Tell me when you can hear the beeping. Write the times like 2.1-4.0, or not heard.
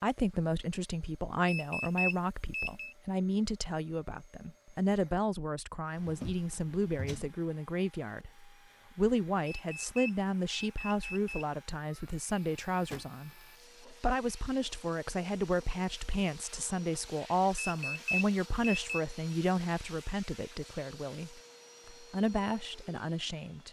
1.4-3.0, 9.4-11.4, 17.6-19.0.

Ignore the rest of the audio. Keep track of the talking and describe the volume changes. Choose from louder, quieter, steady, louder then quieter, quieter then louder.
steady.